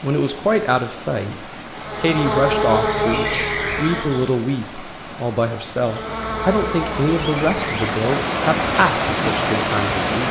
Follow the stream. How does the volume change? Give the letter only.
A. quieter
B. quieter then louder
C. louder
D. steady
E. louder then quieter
C.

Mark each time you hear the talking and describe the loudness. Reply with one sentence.
The talking can be heard from 0.0 to 10.2 s, at a steady volume.